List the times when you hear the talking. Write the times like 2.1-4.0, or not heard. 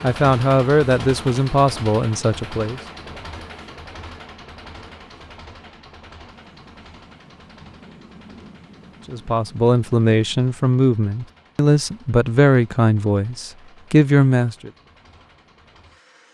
0.0-2.8, 9.1-14.7.